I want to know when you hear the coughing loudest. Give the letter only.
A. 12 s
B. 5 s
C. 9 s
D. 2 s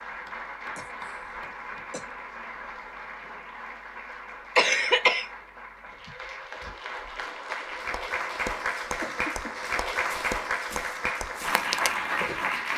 B.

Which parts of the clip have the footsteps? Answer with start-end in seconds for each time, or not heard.
10.1-12.7.